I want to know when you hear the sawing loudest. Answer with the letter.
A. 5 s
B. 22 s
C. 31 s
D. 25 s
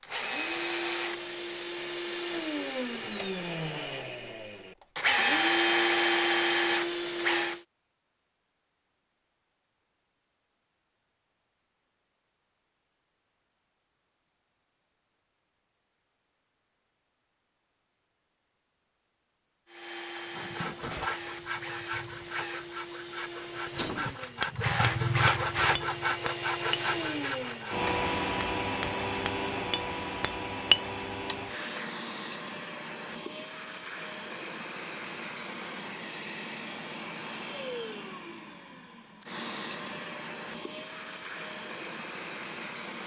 D.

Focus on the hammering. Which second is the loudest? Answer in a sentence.
The volume of the hammering peaks at 31 seconds.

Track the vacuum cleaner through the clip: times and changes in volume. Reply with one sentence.
You can hear the vacuum cleaner from 0.0 to 7.7 s, getting quieter then louder; and from 19.6 to 43.0 s, getting louder then quieter.